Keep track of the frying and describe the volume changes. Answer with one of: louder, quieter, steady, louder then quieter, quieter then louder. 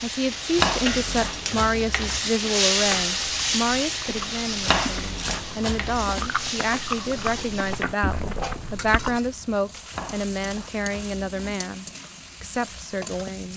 quieter.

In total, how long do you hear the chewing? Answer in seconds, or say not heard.
6 s.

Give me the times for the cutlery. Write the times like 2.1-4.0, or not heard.
not heard.